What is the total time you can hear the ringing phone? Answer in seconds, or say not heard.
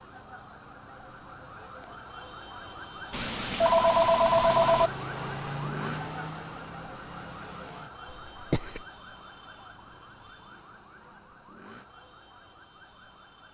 2 s.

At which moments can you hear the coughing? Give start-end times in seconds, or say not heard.
8.1-8.8.